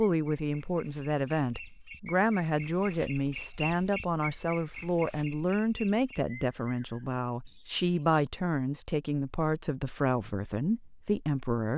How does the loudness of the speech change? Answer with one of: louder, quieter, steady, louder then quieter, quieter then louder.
steady.